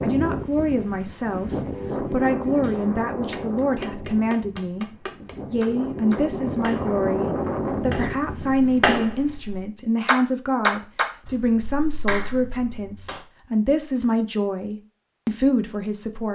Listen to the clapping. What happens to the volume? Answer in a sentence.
The volume of the clapping goes up, then down.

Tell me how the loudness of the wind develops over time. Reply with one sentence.
The loudness of the wind goes down, then up.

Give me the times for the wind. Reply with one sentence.
You can hear the wind from 0.0 to 9.0 s.